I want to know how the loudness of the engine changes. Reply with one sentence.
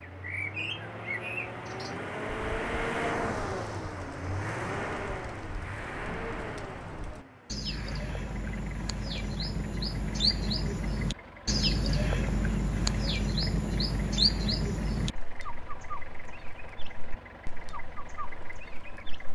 The loudness of the engine goes down.